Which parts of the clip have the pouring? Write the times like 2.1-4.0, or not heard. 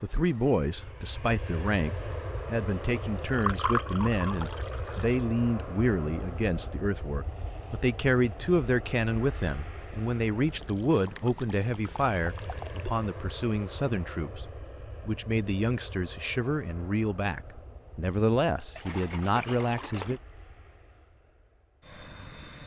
3.0-5.2, 10.4-12.9, 18.8-20.2.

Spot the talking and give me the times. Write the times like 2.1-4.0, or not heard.
0.0-14.4, 15.1-20.2.